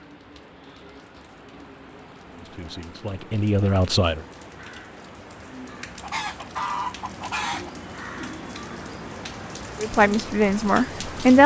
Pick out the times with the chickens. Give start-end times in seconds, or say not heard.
6.0-7.7.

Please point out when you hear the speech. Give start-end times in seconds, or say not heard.
2.3-4.2, 9.8-11.4.